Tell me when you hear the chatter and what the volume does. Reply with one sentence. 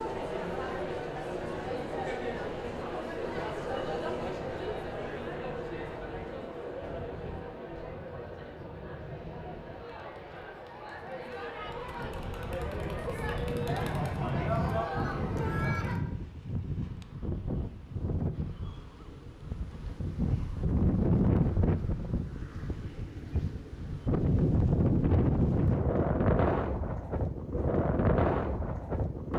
You can hear the chatter from 0.0 to 16.0 s, getting quieter then louder.